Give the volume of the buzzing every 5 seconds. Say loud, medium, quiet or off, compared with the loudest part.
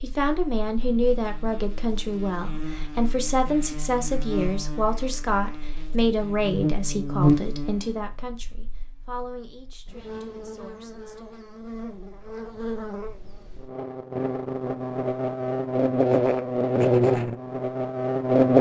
quiet, medium, quiet, loud.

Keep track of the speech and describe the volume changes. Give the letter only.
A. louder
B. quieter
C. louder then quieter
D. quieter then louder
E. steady
B.